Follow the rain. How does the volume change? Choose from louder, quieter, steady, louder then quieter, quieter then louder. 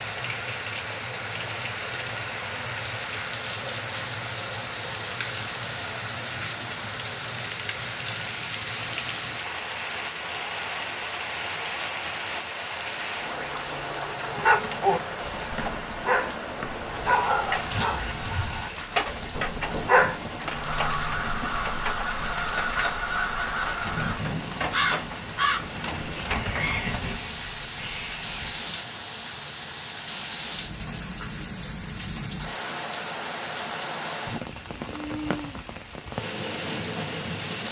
steady.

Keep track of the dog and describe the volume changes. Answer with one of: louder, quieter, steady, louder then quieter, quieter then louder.
quieter.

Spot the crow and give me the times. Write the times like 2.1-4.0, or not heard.
20.4-28.6.